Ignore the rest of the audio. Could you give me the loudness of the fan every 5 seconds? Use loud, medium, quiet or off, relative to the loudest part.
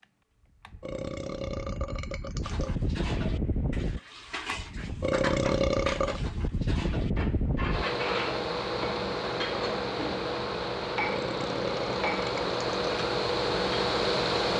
medium, loud, loud.